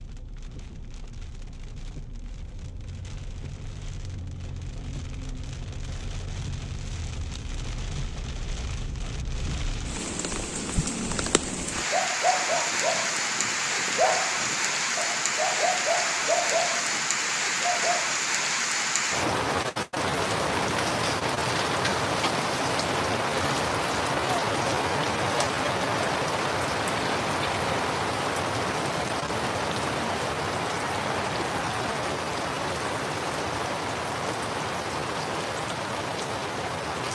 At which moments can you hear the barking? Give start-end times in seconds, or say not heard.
11.7-18.1.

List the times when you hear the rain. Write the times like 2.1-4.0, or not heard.
0.0-37.1.